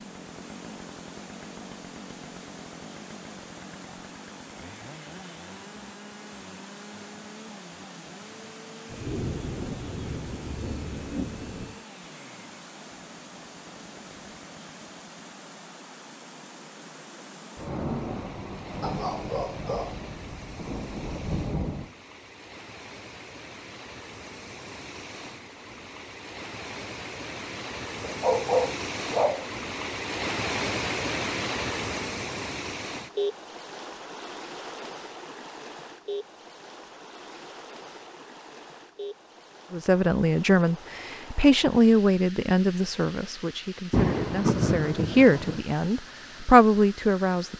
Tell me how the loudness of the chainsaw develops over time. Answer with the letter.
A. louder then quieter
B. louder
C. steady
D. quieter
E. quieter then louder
D.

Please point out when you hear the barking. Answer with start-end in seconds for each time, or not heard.
18.8-20.1, 28.0-29.5.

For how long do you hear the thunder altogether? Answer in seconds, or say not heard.
9 s.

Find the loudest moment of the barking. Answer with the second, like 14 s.
28 s.